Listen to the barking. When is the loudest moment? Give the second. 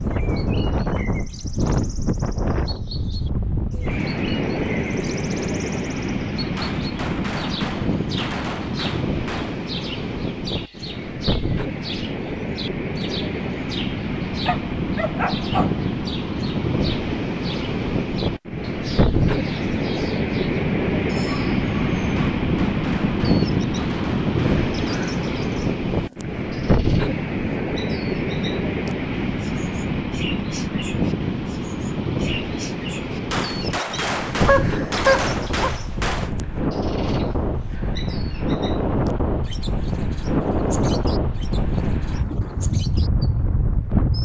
35 s.